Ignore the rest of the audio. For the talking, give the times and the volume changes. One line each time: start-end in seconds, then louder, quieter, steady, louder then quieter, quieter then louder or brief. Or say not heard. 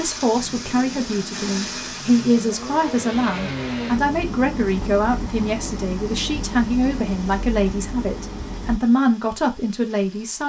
0.0-10.4 steady.